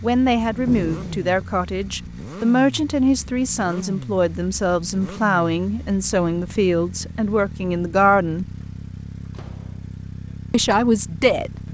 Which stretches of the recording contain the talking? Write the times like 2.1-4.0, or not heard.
0.0-8.4, 10.5-11.5.